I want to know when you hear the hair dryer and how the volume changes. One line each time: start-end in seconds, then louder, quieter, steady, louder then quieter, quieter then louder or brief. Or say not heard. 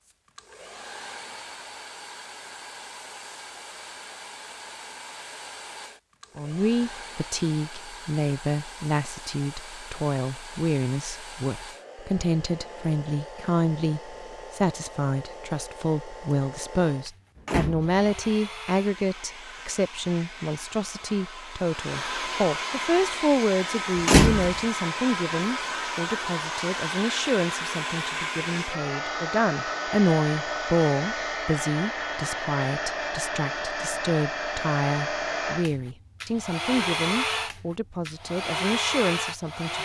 0.1-39.8 louder.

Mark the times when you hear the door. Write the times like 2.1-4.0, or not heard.
17.4-18.1, 24.1-24.6.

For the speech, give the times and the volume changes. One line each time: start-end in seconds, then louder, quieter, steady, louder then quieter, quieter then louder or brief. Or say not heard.
6.3-39.8 steady.